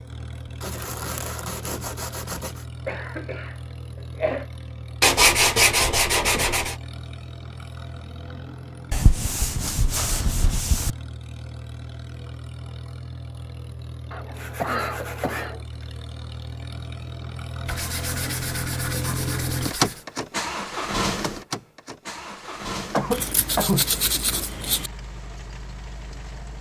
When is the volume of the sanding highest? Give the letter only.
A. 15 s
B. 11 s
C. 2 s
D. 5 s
D.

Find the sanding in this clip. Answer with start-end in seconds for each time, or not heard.
0.6-2.6, 5.0-6.8, 8.9-10.9, 14.3-15.9, 17.6-20.1, 23.1-24.9.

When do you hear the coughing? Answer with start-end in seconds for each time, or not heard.
2.9-4.5, 14.1-15.6, 22.9-23.9.